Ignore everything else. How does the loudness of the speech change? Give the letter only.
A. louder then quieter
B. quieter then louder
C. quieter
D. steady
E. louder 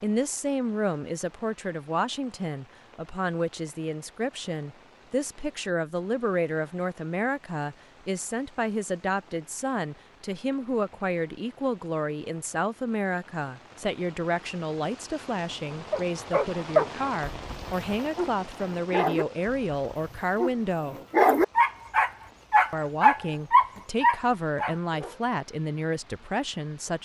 D.